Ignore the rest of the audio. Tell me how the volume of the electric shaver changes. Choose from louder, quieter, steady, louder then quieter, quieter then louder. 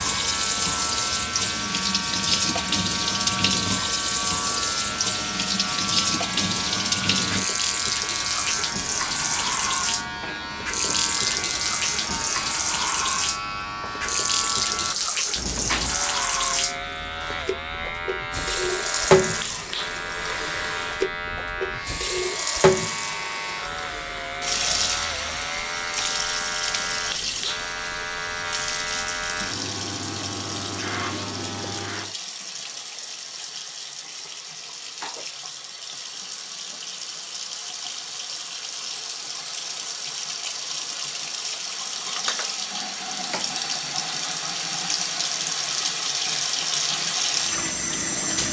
steady.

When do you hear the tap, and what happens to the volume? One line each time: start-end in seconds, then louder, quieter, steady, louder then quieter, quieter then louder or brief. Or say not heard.
0.0-48.4 quieter then louder.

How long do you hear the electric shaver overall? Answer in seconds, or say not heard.
32 s.